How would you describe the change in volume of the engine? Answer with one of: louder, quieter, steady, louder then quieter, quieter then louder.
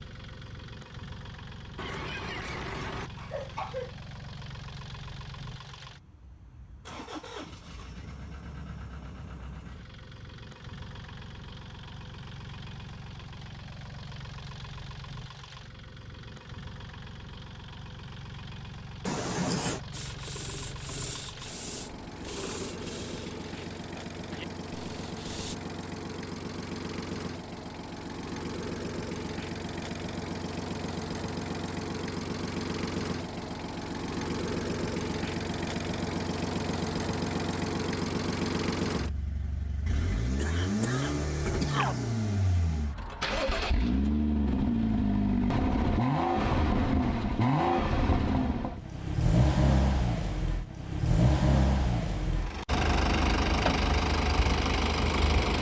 louder.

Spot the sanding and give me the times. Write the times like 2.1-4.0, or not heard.
19.9-25.6.